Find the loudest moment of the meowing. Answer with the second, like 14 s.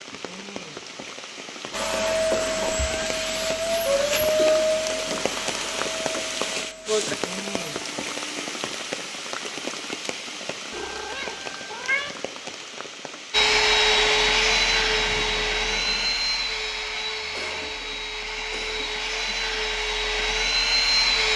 12 s.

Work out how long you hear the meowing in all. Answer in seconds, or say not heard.
2 s.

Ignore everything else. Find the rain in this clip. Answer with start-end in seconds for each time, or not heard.
0.0-16.2.